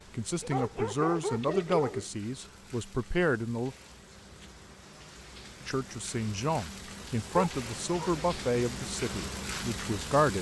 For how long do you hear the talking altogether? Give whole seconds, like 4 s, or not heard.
8 s.